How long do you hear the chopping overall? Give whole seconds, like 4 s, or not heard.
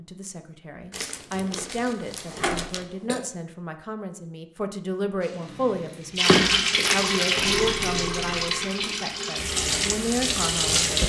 not heard.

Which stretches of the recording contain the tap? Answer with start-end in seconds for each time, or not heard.
5.2-11.0.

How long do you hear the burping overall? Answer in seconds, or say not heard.
3 s.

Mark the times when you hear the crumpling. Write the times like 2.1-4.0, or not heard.
0.9-2.9, 6.2-7.5.